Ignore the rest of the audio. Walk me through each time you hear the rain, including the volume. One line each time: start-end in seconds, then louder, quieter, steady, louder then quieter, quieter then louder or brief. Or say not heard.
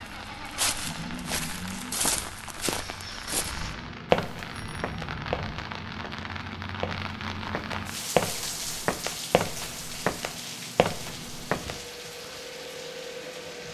0.0-13.6 louder then quieter.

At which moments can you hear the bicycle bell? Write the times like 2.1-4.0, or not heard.
4.5-5.5.